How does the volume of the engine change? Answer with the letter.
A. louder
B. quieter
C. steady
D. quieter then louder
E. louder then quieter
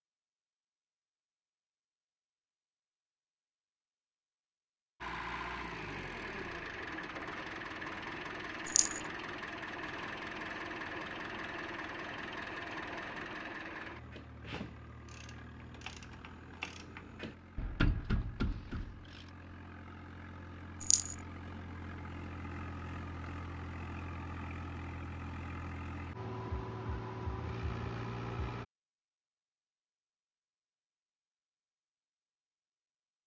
D.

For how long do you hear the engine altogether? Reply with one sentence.
The engine can be heard for 24 seconds in total.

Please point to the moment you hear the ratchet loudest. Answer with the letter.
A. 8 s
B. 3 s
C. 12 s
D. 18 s
D.